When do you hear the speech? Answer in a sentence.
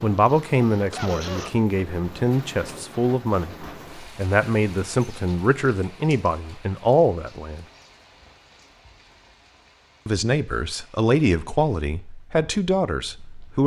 The speech can be heard from 0.0 to 7.7 s and from 10.1 to 13.6 s.